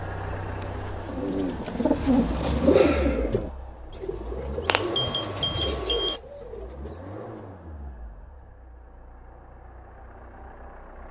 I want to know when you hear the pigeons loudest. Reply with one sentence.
The loudest moment of the pigeons is at 3 seconds.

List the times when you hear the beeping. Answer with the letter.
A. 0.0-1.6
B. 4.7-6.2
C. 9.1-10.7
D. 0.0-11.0
B.